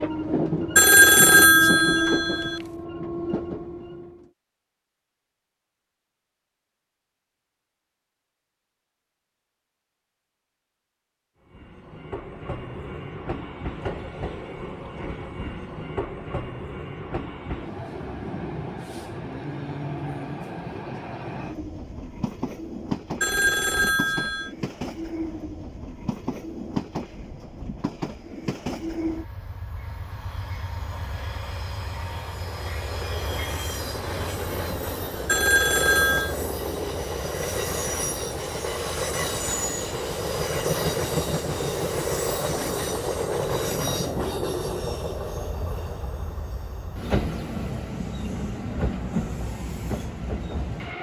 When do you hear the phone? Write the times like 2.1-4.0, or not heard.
0.8-2.6, 23.2-24.5, 35.2-36.4.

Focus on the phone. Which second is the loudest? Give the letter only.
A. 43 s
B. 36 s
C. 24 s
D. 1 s
D.